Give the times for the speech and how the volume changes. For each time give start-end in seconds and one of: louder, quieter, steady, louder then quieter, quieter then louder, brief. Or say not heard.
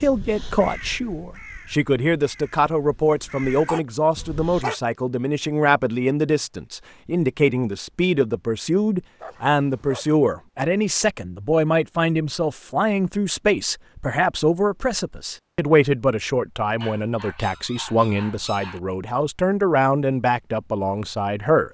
0.0-21.6 steady.